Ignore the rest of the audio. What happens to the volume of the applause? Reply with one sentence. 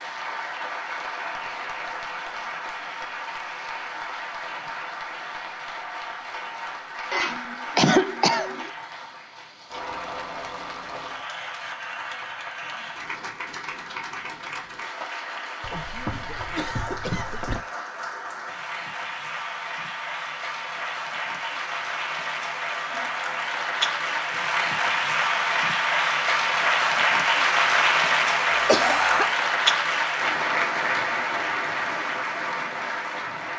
The loudness of the applause goes up.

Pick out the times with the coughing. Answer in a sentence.
You can hear the coughing from 7.1 to 8.7 s, from 15.6 to 17.6 s and from 28.6 to 29.3 s.